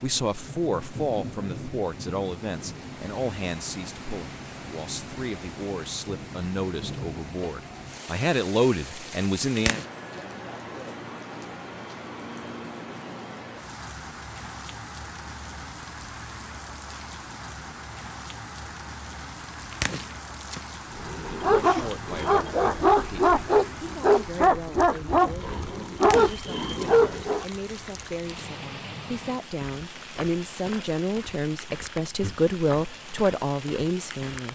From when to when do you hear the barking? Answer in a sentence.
The barking can be heard from 20.9 to 27.4 s.